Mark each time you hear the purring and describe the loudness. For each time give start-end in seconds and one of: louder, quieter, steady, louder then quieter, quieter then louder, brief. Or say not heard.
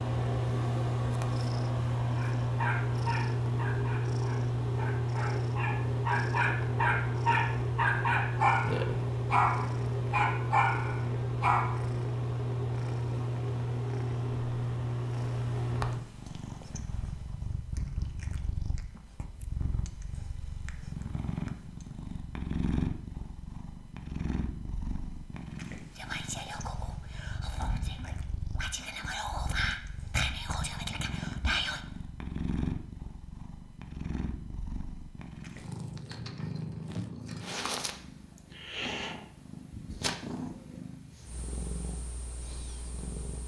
0.0-43.4 quieter.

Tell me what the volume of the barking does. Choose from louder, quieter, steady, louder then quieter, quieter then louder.
louder.